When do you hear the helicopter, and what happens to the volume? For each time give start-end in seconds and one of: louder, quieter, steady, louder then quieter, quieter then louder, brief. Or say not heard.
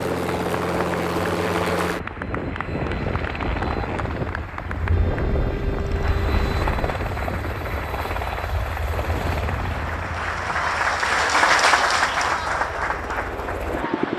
0.0-14.1 quieter.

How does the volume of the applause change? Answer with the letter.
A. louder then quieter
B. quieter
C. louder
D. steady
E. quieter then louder
C.